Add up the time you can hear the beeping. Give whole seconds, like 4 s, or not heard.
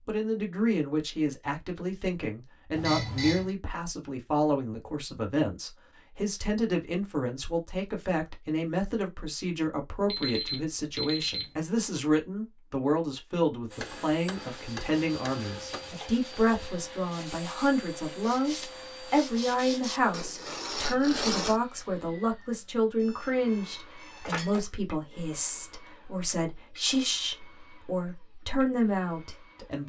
4 s.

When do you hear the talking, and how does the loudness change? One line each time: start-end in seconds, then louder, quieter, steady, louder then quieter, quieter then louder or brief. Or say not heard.
0.1-29.8 steady.